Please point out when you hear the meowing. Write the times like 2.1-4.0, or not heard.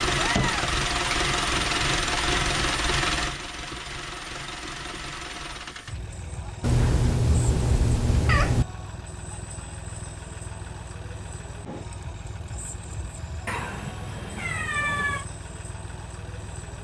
0.1-1.2, 6.6-8.7, 13.4-15.2.